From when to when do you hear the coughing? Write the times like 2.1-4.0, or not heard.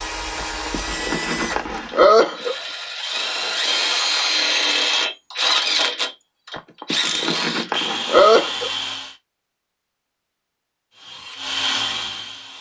0.3-2.5, 6.5-8.7.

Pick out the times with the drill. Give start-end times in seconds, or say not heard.
0.0-9.2, 10.9-12.5.